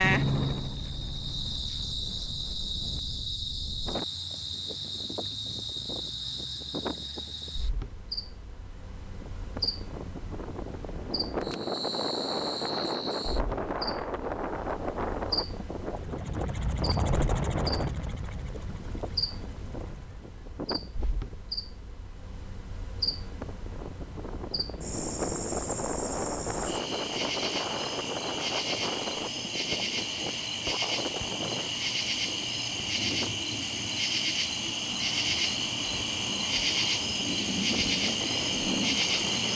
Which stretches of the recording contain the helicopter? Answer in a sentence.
You can hear the helicopter from 0.0 to 1.9 s and from 15.8 to 20.4 s.